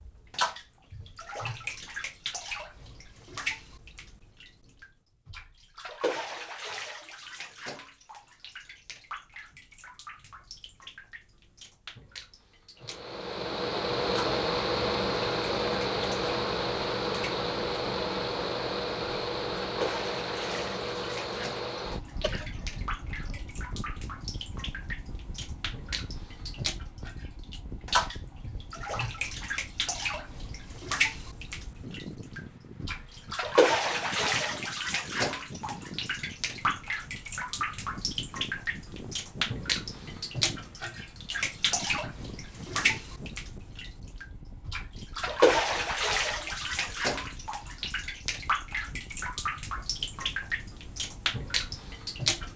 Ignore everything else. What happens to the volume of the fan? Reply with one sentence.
The volume of the fan goes down.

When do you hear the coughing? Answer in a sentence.
The coughing can be heard from 22.1 to 23.4 s.